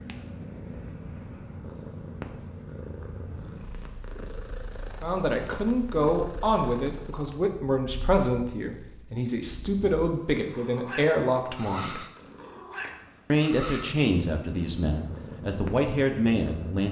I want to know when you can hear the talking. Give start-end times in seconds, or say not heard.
5.0-12.1, 13.3-16.8.